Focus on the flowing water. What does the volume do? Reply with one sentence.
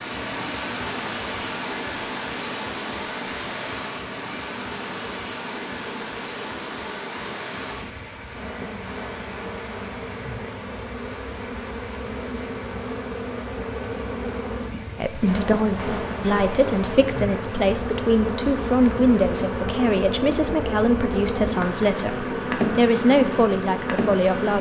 The volume of the flowing water goes down.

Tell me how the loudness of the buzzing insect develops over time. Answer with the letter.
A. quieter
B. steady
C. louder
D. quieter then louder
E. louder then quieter
C.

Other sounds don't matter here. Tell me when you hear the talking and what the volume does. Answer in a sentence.
You can hear the talking from 14.9 to 24.5 s, at a steady volume.